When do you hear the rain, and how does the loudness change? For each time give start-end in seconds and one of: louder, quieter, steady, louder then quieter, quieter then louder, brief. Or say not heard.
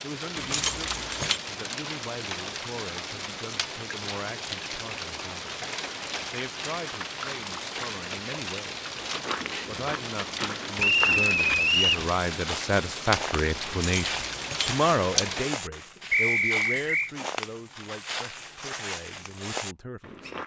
0.0-15.5 steady.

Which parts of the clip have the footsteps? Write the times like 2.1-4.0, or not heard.
9.1-20.4.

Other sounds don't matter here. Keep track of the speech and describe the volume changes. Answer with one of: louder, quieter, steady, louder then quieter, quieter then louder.
louder then quieter.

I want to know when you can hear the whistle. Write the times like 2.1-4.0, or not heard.
0.5-1.3, 10.8-12.1, 16.1-17.1.